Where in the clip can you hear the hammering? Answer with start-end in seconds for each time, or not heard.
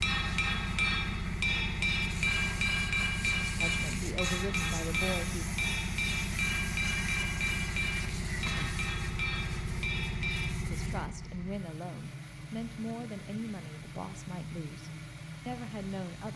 0.0-10.5.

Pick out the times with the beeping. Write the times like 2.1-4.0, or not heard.
not heard.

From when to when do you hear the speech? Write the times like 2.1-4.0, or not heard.
3.6-5.5, 10.7-16.3.